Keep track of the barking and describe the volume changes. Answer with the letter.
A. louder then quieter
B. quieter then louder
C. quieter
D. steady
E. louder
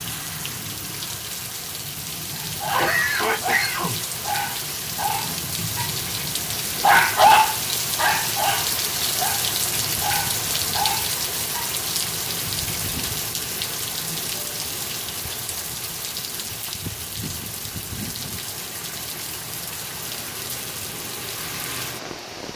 A.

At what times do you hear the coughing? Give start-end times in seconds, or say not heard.
2.6-4.0.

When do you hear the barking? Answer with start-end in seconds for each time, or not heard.
2.3-6.0, 6.8-11.8.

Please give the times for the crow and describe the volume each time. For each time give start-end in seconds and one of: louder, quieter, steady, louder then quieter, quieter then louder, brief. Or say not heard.
not heard.